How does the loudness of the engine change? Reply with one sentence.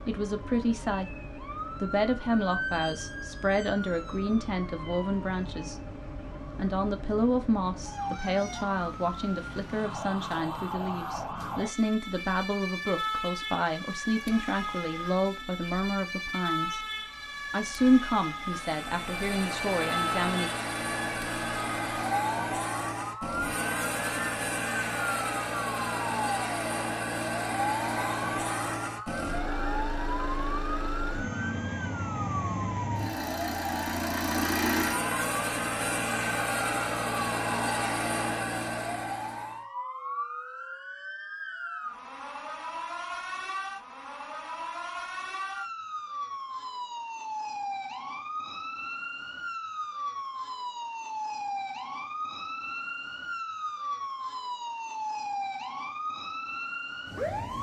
The loudness of the engine stays about the same.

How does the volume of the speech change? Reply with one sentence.
The volume of the speech stays about the same.